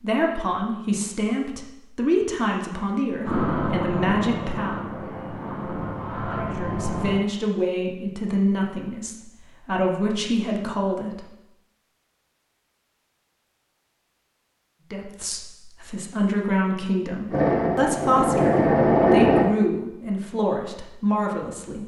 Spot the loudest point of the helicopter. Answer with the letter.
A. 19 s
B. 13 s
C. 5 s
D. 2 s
A.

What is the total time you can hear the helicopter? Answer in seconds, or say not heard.
6 s.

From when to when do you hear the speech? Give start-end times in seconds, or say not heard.
0.0-4.8, 6.3-11.2, 14.9-21.8.